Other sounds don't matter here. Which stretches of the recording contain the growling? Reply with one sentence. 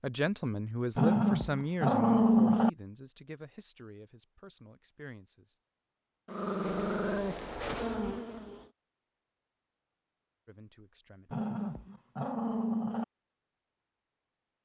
You can hear the growling from 0.9 to 2.7 s, from 6.2 to 7.6 s and from 11.3 to 13.1 s.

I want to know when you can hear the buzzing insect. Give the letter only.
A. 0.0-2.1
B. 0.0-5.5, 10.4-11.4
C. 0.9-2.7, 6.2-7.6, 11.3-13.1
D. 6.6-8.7
D.